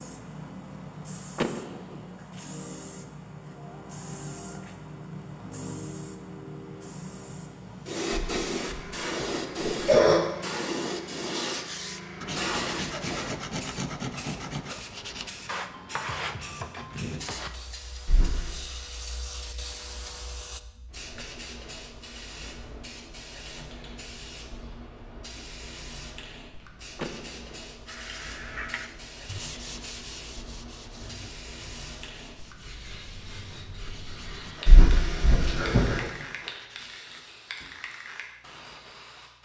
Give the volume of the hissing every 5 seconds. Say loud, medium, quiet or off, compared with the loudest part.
medium, loud, loud, medium, medium, medium, medium, medium.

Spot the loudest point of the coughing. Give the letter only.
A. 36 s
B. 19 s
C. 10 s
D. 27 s
C.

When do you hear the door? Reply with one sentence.
The door can be heard from 1.4 to 2.1 s and from 26.9 to 27.8 s.